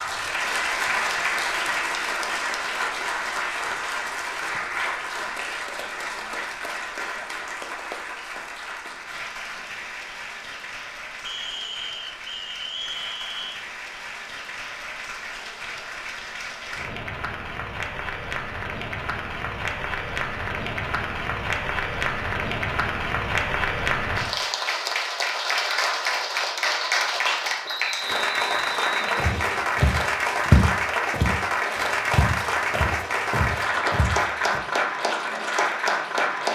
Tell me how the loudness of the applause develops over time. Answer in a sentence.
The loudness of the applause goes down, then up.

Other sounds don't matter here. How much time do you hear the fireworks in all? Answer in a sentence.
You can't hear the fireworks here.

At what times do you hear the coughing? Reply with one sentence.
You can't hear the coughing here.